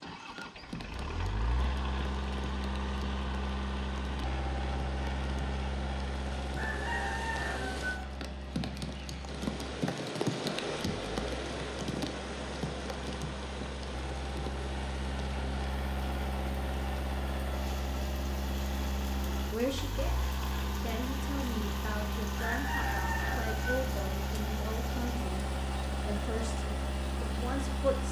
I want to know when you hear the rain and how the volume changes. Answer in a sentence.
The rain can be heard from 0.0 to 28.0 s, getting louder then quieter.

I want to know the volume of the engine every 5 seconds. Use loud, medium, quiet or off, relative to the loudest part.
loud, loud, medium, loud, loud, loud.